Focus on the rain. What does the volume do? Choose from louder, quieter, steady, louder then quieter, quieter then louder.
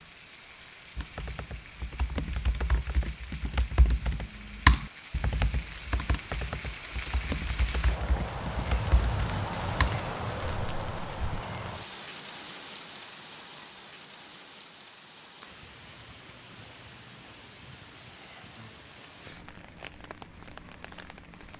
louder then quieter.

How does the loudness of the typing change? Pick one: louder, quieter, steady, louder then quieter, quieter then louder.
louder then quieter.